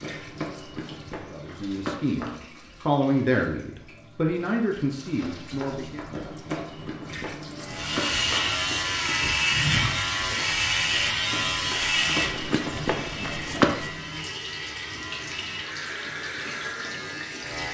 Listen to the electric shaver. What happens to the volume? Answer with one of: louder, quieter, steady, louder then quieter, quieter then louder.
quieter.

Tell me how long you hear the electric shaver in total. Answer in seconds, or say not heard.
10 s.